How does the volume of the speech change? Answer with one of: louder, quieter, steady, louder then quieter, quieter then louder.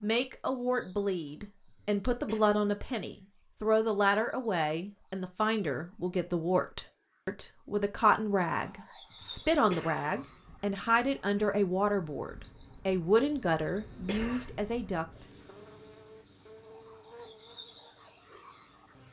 steady.